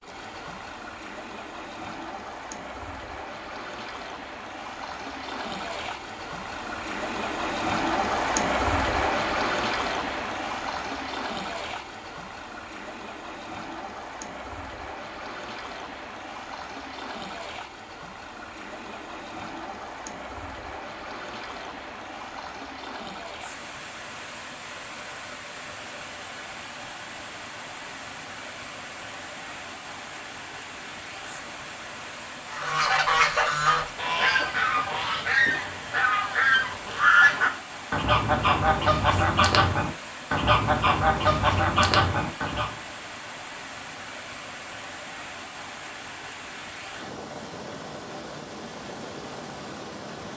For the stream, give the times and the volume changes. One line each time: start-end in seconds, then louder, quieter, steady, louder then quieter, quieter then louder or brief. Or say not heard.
0.0-50.3 quieter.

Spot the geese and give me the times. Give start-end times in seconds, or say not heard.
32.5-42.8.